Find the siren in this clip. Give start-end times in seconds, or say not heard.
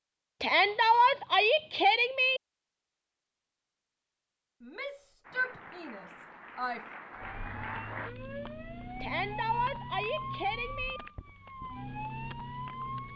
7.2-13.1.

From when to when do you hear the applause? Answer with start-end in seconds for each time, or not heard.
5.2-8.1.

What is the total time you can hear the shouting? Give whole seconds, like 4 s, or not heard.
6 s.